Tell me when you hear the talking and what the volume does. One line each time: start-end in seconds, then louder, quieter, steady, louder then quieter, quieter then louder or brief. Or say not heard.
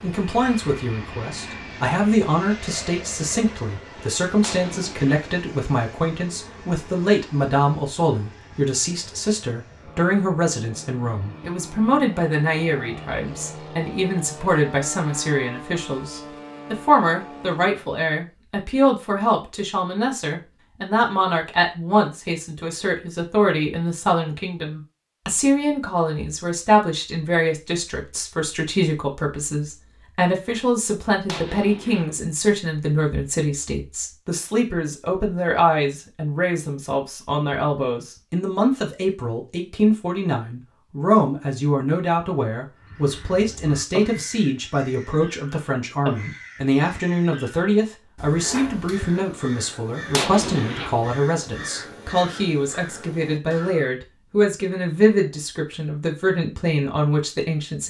0.0-57.8 steady.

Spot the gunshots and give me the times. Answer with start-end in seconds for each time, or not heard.
4.4-5.3, 31.2-32.2, 50.1-51.1.